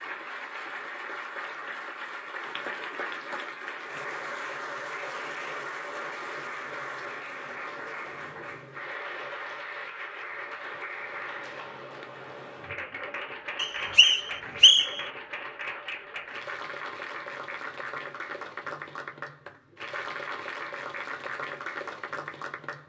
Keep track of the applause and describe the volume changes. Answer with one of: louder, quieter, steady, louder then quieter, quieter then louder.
steady.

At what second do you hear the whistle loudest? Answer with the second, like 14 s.
15 s.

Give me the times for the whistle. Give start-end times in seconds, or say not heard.
13.6-15.1.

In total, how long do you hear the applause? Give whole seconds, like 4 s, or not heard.
23 s.